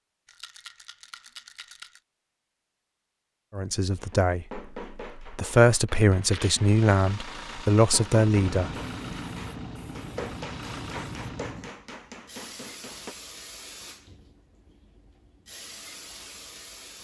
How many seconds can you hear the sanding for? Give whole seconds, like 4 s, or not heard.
not heard.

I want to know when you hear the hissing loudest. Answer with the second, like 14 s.
9 s.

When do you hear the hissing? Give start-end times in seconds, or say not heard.
8.3-16.9.